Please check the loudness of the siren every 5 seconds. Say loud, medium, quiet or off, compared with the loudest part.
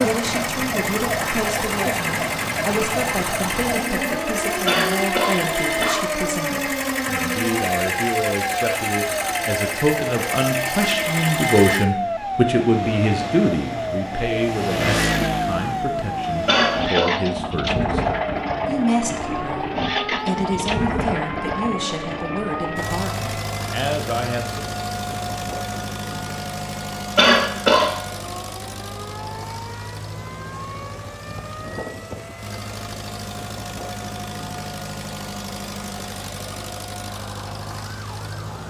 loud, loud, loud, loud, medium, medium, quiet, quiet.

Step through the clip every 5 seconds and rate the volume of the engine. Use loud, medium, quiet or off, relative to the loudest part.
loud, loud, loud, loud, loud, medium, medium, medium.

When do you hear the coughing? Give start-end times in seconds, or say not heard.
4.7-6.0, 16.4-17.1, 27.1-27.9.